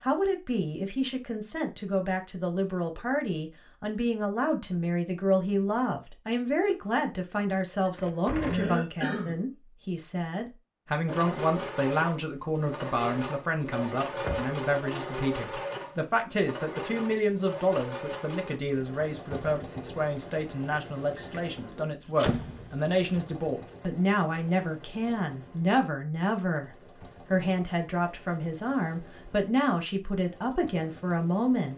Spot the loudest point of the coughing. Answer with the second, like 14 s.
9 s.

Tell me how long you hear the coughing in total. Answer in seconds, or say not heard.
2 s.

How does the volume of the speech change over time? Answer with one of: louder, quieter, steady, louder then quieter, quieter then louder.
steady.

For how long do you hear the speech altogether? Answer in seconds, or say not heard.
31 s.